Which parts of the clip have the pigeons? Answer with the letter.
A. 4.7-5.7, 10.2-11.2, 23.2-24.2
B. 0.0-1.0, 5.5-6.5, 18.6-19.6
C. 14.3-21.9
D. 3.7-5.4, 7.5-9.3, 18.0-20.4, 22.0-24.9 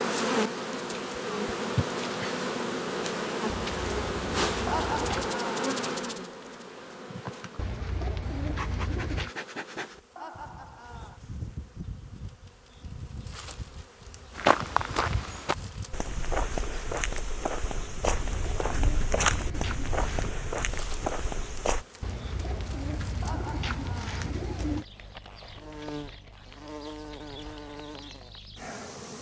D.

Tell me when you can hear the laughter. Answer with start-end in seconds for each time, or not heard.
4.7-5.7, 10.2-11.2, 23.2-24.2.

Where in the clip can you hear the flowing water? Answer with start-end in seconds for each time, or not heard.
not heard.